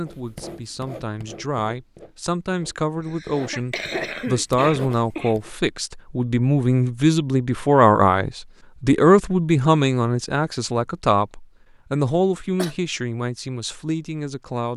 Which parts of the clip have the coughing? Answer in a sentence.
You can hear the coughing from 3.0 to 5.3 s and from 12.1 to 12.8 s.